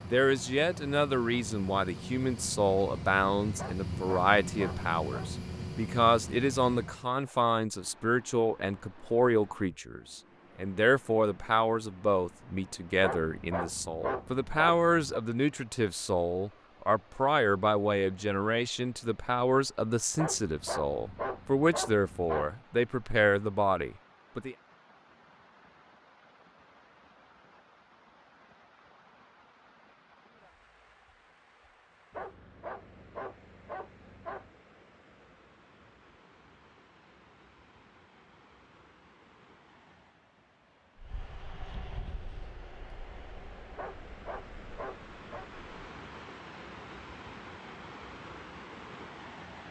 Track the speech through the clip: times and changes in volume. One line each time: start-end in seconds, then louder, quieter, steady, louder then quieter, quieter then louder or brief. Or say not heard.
0.1-24.6 steady.